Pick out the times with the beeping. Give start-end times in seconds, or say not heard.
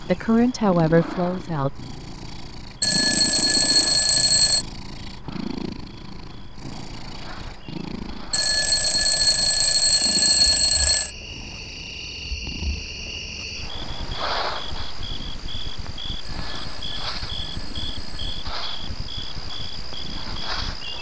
2.8-4.7, 8.3-11.1, 16.2-18.4.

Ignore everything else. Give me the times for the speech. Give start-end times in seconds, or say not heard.
0.0-1.7.